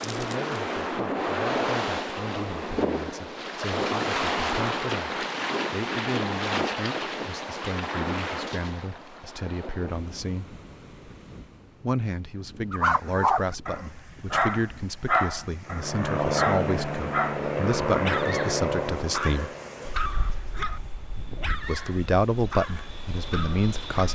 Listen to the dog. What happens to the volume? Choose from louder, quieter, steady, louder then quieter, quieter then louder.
quieter.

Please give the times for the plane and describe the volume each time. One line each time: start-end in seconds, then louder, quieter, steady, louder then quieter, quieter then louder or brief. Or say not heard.
15.7-24.0 quieter then louder.